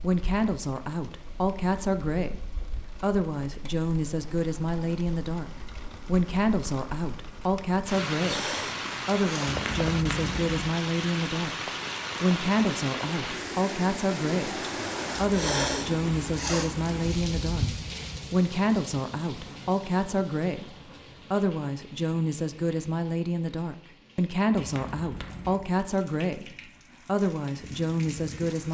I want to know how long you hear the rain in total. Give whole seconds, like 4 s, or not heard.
29 s.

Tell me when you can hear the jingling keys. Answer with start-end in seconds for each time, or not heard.
9.4-10.8, 24.6-25.7.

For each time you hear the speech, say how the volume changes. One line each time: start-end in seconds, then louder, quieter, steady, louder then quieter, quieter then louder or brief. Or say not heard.
0.0-11.6 steady
12.2-17.6 steady
18.3-28.7 steady.